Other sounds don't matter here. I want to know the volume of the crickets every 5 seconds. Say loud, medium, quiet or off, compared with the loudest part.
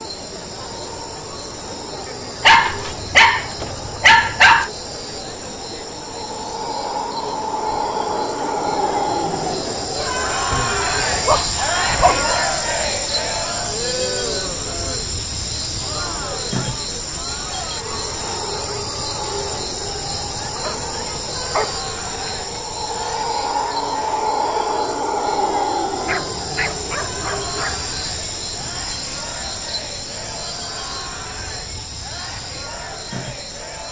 medium, loud, loud, loud, loud, loud, medium.